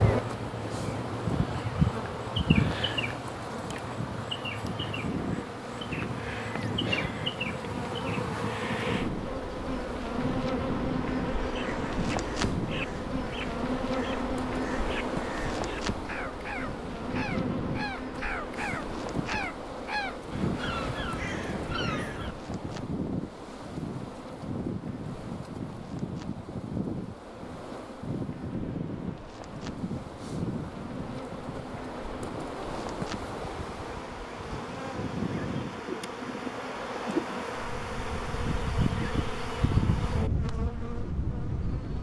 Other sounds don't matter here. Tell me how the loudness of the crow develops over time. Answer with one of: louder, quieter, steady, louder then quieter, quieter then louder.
louder.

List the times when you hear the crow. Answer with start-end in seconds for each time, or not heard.
11.4-22.4.